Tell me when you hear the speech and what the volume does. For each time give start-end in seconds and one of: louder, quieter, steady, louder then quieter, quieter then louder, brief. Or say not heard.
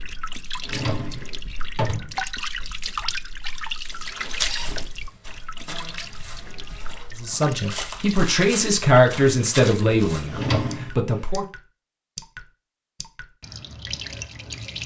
7.2-11.4 louder then quieter.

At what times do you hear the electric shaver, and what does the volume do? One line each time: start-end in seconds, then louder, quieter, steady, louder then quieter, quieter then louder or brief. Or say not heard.
not heard.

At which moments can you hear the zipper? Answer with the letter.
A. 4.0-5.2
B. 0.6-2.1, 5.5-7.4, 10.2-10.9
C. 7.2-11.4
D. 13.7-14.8
A.